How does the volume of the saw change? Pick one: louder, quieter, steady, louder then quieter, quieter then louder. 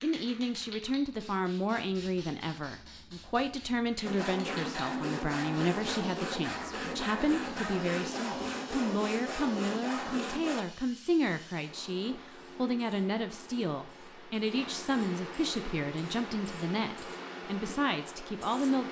steady.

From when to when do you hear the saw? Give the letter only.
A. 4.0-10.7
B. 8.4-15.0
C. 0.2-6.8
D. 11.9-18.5
A.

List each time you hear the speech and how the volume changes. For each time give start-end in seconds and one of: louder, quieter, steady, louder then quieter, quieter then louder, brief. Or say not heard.
0.0-18.8 steady.